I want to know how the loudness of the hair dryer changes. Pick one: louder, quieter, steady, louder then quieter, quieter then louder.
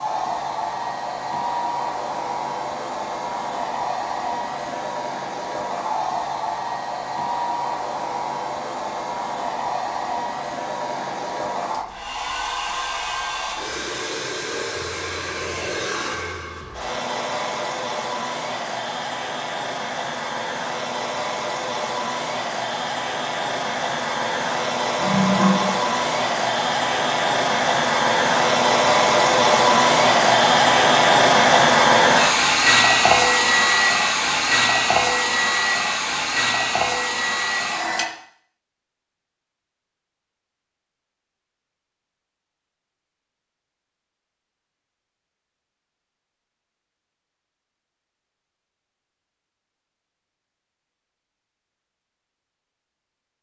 louder.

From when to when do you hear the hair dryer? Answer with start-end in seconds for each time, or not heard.
0.0-38.0.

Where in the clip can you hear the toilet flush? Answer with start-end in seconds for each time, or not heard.
25.0-25.9.